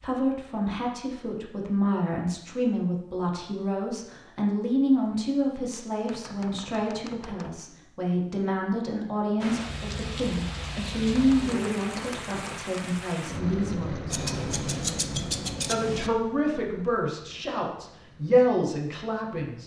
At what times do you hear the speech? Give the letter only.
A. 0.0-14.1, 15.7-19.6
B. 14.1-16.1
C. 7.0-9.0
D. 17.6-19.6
A.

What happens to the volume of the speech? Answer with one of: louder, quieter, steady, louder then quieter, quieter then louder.
steady.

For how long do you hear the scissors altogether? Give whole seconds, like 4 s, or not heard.
2 s.